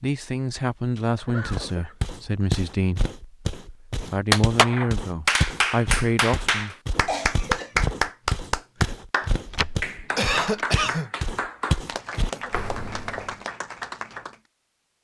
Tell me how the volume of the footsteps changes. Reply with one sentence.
The volume of the footsteps stays about the same.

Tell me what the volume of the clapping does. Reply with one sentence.
The loudness of the clapping goes down.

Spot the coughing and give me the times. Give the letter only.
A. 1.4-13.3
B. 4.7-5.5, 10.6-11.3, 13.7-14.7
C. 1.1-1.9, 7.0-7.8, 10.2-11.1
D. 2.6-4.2
C.